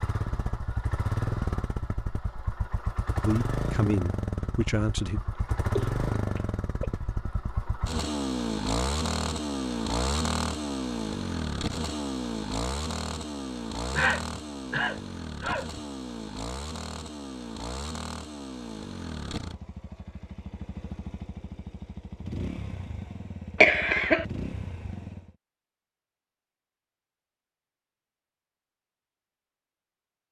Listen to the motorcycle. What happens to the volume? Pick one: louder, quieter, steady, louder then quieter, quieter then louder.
quieter.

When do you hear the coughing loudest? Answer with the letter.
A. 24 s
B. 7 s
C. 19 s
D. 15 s
A.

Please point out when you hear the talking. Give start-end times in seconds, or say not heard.
3.2-5.2.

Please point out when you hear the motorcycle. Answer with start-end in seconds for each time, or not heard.
0.0-25.4.